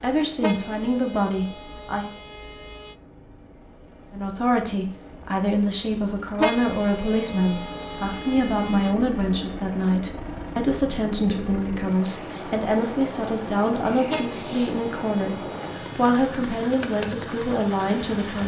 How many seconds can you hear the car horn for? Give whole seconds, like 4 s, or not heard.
7 s.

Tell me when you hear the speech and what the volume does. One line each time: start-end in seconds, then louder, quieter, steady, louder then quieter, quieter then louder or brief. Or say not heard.
0.0-2.0 brief
4.1-18.4 steady.